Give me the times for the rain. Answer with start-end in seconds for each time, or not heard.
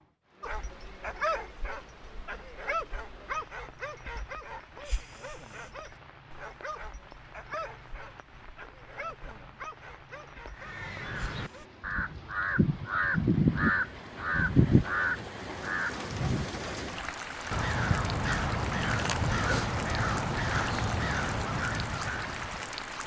0.0-23.0.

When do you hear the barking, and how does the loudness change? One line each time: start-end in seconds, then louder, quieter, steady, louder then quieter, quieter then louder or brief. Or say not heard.
0.4-11.7 quieter.